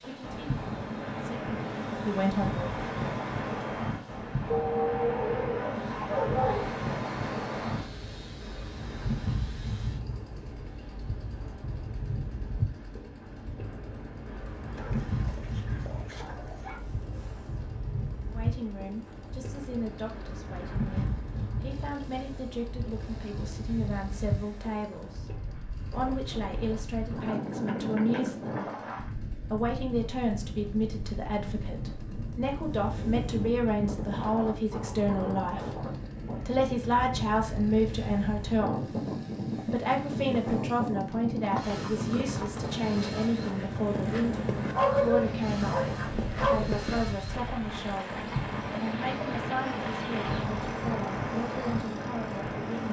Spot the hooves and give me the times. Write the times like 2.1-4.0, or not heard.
41.4-50.5.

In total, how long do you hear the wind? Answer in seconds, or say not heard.
53 s.